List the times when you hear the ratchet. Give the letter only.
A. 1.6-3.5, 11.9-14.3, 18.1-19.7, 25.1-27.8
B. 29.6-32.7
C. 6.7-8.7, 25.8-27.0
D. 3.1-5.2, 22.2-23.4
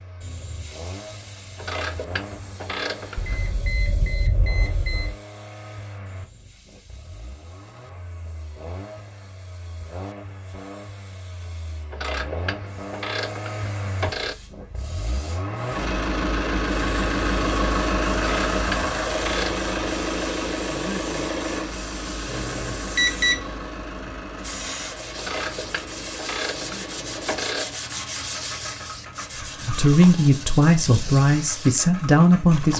A.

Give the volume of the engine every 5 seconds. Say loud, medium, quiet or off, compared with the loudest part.
quiet, quiet, quiet, loud, medium, quiet, quiet.